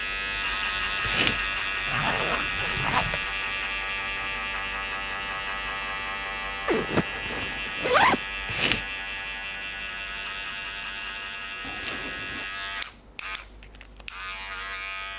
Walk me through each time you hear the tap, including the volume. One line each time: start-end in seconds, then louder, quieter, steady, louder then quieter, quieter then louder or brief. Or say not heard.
not heard.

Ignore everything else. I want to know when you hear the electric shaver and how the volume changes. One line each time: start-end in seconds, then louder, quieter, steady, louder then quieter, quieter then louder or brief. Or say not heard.
0.0-15.1 quieter.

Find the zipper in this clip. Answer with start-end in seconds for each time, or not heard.
1.9-3.2, 6.7-8.2, 11.7-12.4.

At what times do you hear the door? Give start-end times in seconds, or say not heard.
not heard.